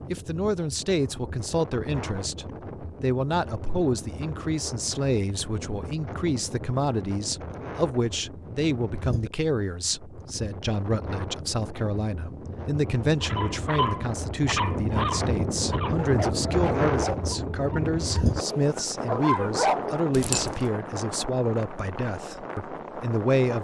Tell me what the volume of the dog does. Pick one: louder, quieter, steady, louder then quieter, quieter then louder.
quieter then louder.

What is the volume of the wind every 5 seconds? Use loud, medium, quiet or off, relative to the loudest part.
medium, medium, medium, loud, medium.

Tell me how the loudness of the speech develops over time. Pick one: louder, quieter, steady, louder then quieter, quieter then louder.
steady.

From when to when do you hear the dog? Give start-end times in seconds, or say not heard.
13.2-20.6.